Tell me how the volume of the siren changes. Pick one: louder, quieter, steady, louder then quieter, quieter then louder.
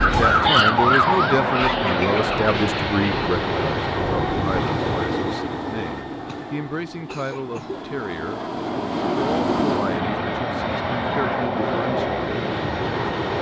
quieter.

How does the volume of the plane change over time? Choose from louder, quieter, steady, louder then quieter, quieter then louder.
quieter then louder.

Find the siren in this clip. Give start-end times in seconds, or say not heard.
0.0-4.5.